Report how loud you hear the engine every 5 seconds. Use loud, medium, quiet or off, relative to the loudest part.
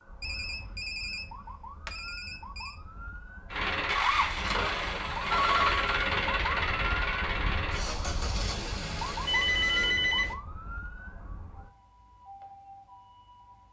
loud, loud, off.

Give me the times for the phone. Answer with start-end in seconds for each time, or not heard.
0.2-1.2, 1.9-2.8, 4.8-5.8, 9.2-10.3.